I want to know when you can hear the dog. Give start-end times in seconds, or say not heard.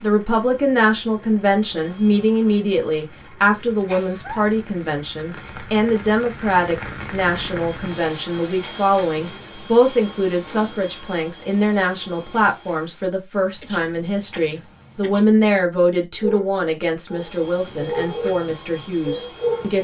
16.2-19.7.